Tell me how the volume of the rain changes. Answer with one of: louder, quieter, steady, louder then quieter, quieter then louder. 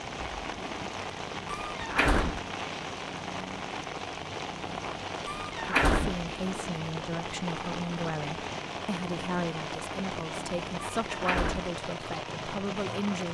steady.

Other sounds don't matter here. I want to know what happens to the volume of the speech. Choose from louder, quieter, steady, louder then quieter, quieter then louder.
steady.